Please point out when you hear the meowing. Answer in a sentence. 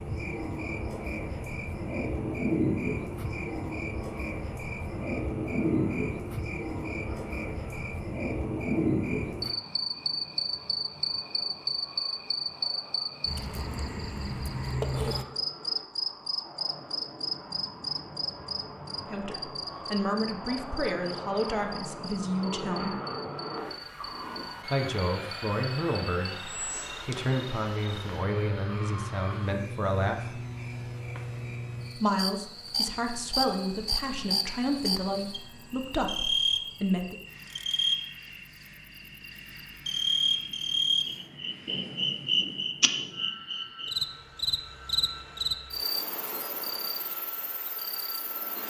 The meowing can't be heard in this clip.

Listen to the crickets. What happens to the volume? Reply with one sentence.
The volume of the crickets goes down, then up.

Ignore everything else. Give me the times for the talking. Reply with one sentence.
The talking can be heard from 19.1 to 22.9 s, from 24.6 to 30.4 s and from 31.9 to 37.1 s.